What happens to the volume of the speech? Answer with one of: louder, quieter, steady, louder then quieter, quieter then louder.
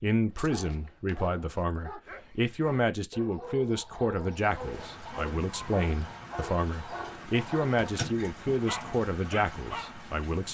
steady.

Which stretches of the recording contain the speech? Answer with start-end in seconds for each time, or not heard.
0.0-10.4.